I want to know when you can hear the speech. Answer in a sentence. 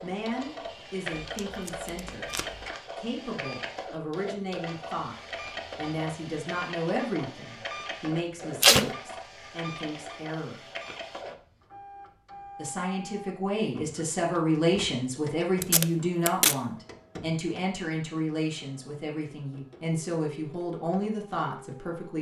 You can hear the speech from 0.0 to 10.7 s and from 12.6 to 22.1 s.